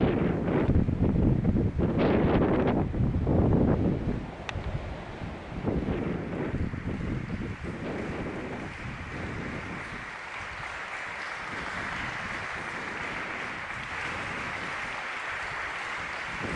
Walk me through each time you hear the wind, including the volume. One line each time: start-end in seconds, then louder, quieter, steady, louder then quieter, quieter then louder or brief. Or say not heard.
0.0-16.5 quieter.